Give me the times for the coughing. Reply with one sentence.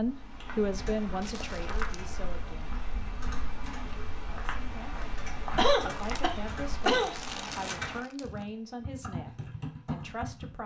You can hear the coughing from 5.5 to 7.2 s.